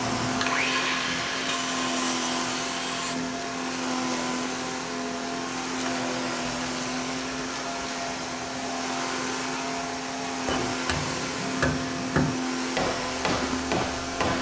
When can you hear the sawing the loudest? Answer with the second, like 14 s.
1 s.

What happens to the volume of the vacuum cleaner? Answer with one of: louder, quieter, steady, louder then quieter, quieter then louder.
steady.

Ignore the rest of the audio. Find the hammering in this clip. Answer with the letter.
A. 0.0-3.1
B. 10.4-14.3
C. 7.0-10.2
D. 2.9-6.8
B.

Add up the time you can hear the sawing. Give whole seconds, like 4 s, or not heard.
3 s.